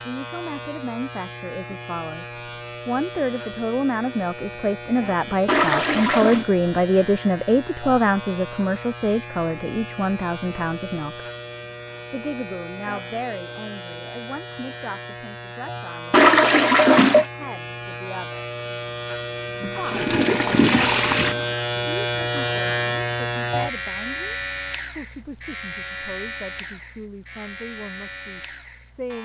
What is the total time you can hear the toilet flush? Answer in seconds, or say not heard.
4 s.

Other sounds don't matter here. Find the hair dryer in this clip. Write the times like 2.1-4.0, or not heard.
not heard.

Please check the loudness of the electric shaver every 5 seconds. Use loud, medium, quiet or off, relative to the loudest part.
medium, medium, medium, medium, loud, medium.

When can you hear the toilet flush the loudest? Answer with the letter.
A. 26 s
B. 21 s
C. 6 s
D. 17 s
D.